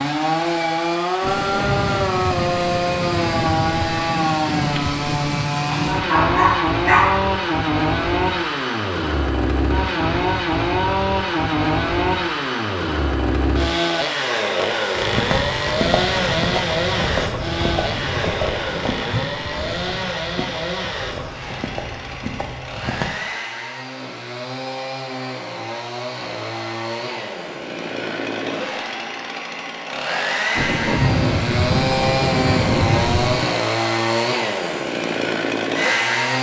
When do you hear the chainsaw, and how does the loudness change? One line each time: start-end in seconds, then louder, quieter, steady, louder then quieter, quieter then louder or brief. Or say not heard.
0.0-36.3 quieter then louder.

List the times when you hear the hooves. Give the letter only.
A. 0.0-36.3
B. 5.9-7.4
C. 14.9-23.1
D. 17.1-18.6
C.